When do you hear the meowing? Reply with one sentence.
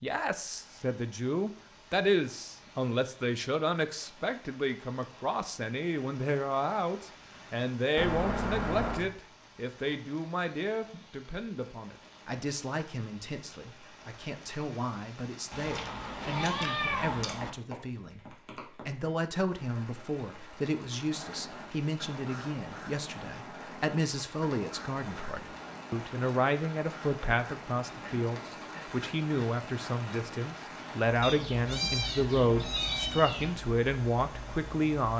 The meowing can be heard from 8.0 to 9.1 s, from 15.5 to 17.5 s and from 31.2 to 33.6 s.